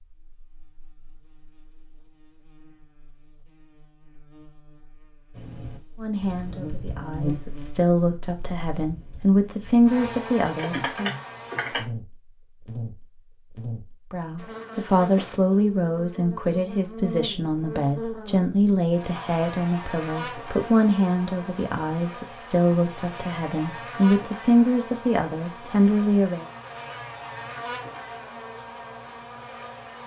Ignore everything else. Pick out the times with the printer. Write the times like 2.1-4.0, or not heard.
not heard.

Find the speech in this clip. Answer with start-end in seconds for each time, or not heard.
6.0-11.1, 14.1-26.4.